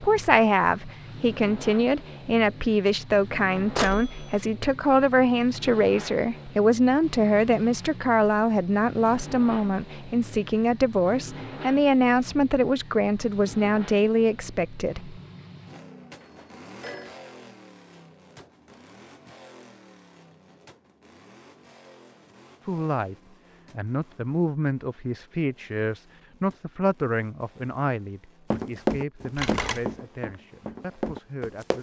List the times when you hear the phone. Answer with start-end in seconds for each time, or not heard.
3.8-4.5, 16.2-17.1, 29.4-29.9.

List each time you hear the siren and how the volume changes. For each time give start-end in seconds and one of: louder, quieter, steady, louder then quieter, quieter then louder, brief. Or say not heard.
not heard.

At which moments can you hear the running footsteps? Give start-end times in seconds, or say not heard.
28.5-31.7.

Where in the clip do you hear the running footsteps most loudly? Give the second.
29 s.